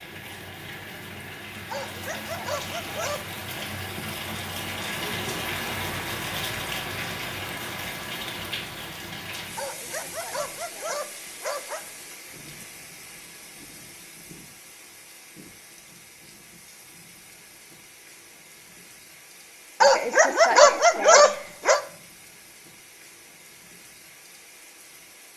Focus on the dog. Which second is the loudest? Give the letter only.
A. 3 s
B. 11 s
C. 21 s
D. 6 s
C.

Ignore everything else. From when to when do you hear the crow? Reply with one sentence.
You can't hear the crow here.